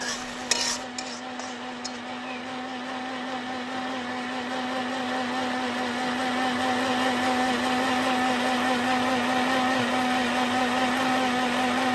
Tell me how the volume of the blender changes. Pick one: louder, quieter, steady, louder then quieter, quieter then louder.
louder.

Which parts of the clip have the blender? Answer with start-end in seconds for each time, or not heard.
0.0-11.9.